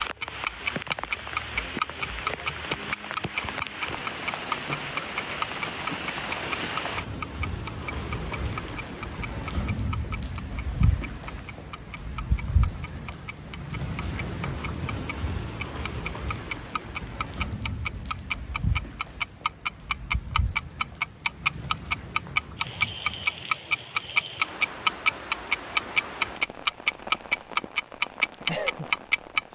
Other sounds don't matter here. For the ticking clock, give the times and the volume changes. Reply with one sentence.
You can hear the ticking clock from 0.0 to 29.4 s, getting quieter then louder.